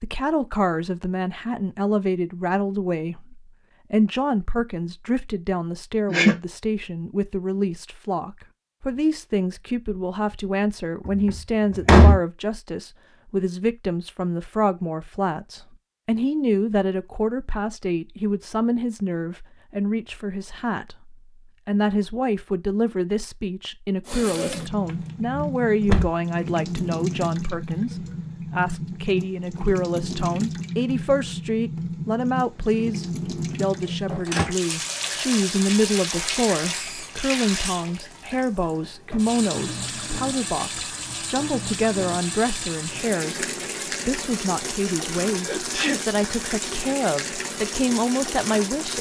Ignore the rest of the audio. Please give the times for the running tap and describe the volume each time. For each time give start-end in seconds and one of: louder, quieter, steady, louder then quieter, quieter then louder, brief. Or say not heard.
24.1-48.9 steady.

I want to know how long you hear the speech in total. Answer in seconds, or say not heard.
48 s.